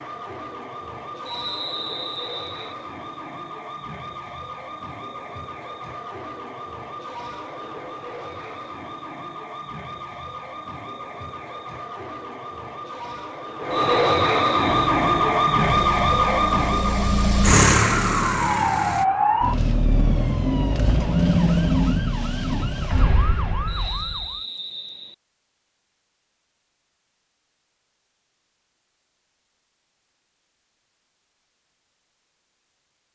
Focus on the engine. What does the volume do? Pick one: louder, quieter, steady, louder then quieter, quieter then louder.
louder then quieter.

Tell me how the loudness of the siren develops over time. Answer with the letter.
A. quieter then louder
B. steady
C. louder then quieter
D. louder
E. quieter
D.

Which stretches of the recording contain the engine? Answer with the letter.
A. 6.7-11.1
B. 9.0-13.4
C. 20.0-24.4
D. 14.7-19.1
D.